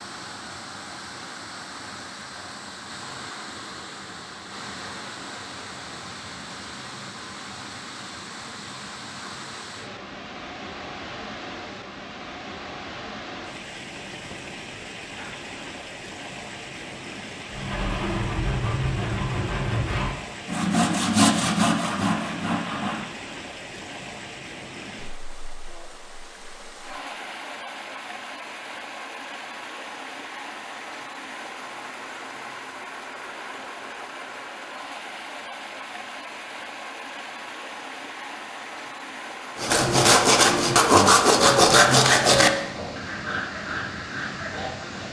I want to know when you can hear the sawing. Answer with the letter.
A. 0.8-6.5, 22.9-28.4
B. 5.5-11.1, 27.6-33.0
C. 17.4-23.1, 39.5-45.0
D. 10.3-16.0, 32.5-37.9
C.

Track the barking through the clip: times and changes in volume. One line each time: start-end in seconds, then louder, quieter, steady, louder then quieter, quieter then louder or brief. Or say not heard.
not heard.